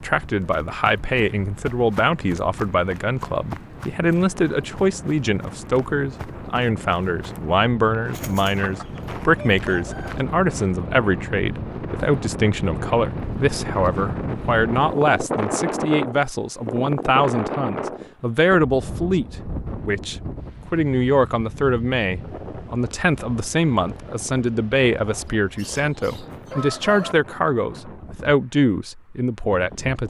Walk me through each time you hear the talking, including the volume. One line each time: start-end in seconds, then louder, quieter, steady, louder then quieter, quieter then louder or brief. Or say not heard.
0.0-30.0 steady.